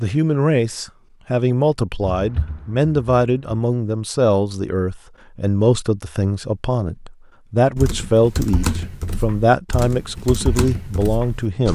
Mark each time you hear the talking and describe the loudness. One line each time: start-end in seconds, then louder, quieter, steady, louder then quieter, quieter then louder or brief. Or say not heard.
0.0-11.7 steady.